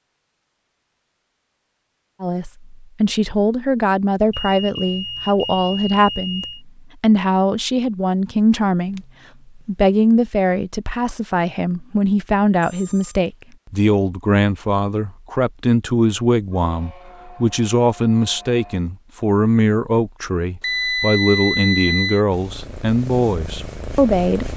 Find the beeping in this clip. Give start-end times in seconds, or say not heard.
4.3-6.7, 12.6-13.2, 20.6-22.2.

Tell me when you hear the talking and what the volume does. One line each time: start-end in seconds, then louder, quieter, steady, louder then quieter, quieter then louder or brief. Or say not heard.
2.2-24.5 steady.